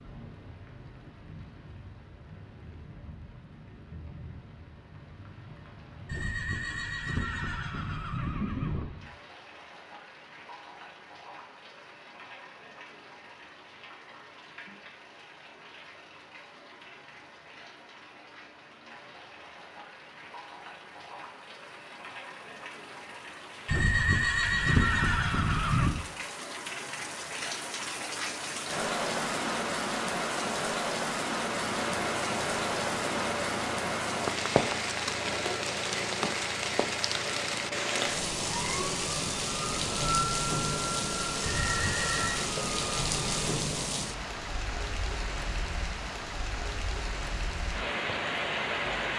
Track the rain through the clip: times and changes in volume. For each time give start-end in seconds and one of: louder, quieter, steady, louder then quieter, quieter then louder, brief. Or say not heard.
0.0-49.1 louder.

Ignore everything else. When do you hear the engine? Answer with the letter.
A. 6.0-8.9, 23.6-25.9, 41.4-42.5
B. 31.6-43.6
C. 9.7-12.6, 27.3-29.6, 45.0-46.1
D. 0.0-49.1
B.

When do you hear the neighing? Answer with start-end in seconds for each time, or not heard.
6.0-8.9, 23.6-25.9, 41.4-42.5.